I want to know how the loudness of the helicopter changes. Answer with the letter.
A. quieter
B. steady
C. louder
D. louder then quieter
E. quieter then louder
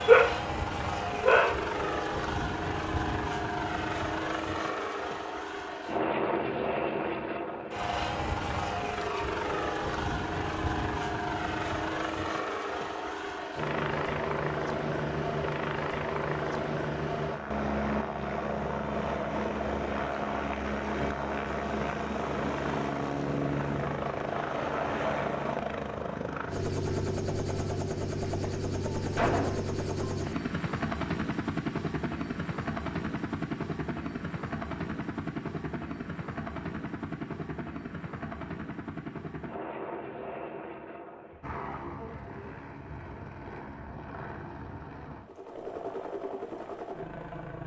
A.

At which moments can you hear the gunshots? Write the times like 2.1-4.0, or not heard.
29.1-29.7.